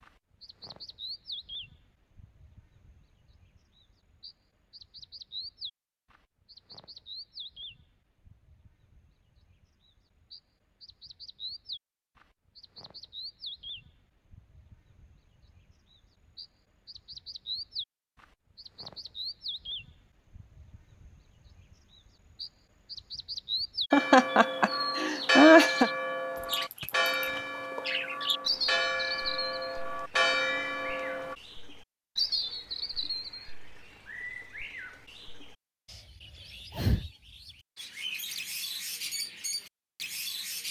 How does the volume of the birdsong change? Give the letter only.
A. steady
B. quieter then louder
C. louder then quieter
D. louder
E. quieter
D.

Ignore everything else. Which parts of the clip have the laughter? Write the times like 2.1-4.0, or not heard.
23.9-25.9.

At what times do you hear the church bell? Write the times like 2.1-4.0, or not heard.
23.9-31.4.